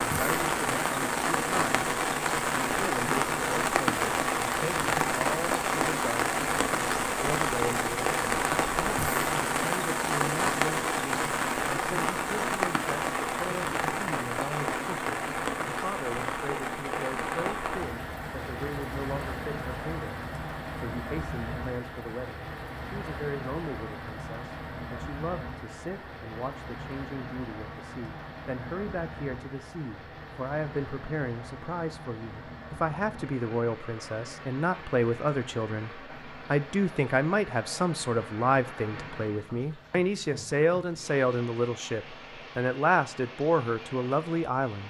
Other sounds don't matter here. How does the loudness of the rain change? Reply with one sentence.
The loudness of the rain goes down.